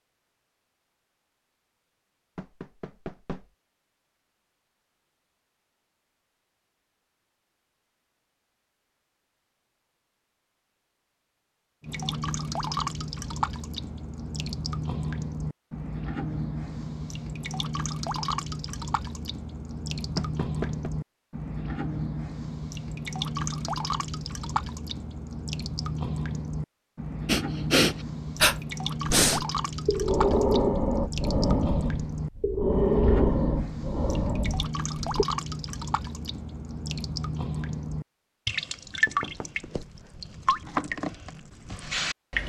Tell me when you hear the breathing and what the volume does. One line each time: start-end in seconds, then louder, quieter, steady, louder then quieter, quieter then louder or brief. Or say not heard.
27.2-35.2 quieter.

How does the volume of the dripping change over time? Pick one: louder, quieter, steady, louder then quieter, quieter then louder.
steady.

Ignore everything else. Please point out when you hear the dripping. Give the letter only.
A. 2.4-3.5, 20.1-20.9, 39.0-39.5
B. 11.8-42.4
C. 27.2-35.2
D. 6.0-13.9
B.